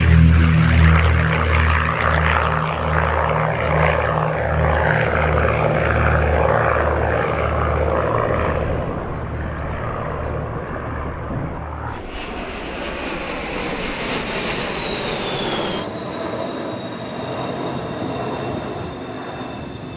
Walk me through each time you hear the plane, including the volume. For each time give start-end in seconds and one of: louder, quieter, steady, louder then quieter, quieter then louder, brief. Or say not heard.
0.0-19.9 quieter.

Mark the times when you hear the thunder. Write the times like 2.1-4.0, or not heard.
8.3-11.7.